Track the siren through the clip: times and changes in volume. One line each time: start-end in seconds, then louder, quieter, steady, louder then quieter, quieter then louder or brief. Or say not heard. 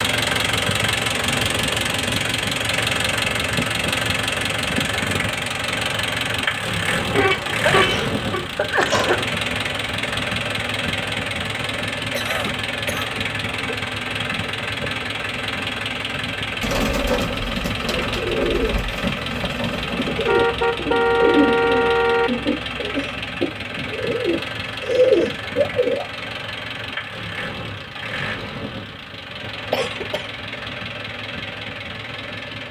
not heard.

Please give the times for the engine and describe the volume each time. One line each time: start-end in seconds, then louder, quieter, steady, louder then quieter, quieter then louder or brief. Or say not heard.
0.0-32.6 quieter.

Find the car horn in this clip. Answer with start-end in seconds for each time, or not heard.
7.1-8.4, 20.2-22.3.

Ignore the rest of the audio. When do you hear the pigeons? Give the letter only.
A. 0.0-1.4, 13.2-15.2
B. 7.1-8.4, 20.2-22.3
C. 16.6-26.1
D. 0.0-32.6
C.